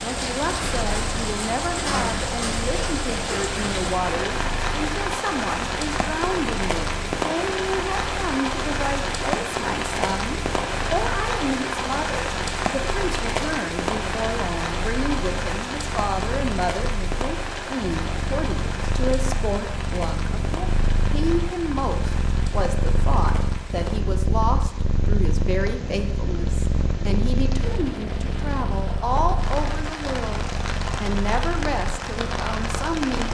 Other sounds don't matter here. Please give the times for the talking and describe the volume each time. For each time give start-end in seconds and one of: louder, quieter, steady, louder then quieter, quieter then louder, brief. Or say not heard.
0.0-33.3 steady.